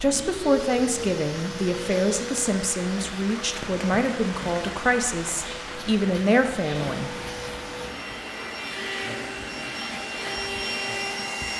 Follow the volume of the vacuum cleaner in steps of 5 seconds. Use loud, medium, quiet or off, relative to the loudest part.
medium, medium, loud.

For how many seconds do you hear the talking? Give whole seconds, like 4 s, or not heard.
7 s.